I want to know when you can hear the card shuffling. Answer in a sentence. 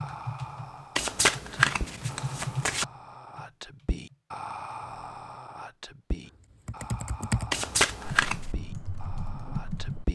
You can hear the card shuffling from 0.9 to 2.9 s and from 7.5 to 8.4 s.